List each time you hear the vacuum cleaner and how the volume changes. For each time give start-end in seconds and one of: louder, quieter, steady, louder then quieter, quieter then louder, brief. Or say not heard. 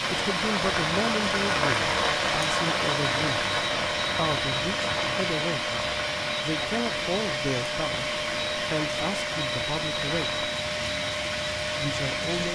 0.0-12.4 steady.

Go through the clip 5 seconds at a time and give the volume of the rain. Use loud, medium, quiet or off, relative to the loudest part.
loud, medium, medium.